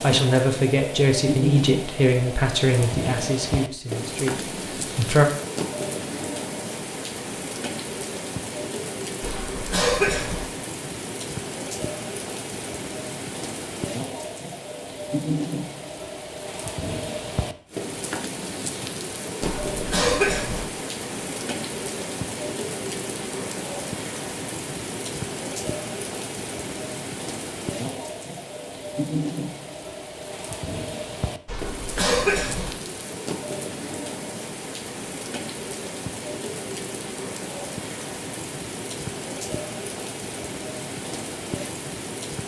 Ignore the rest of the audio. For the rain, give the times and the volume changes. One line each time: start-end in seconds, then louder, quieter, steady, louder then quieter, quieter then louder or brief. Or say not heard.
0.0-42.4 steady.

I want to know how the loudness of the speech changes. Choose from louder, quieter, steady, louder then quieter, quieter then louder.
quieter.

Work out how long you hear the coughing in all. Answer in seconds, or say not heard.
4 s.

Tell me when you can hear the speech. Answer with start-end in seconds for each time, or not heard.
0.0-5.2.